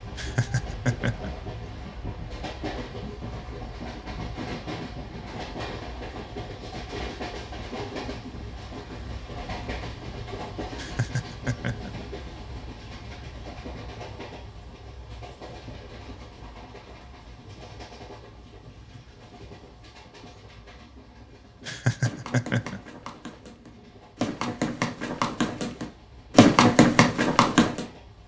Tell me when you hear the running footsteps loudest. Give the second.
27 s.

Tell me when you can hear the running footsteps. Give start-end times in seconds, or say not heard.
22.0-27.9.